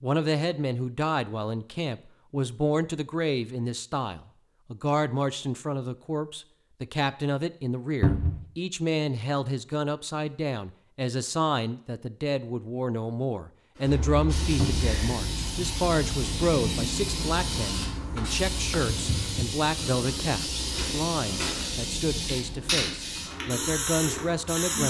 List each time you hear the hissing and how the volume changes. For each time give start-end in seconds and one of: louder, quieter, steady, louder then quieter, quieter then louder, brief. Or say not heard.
13.8-24.8 steady.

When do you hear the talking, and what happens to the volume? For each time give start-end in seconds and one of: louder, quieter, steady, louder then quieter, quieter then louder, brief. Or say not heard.
0.0-24.8 steady.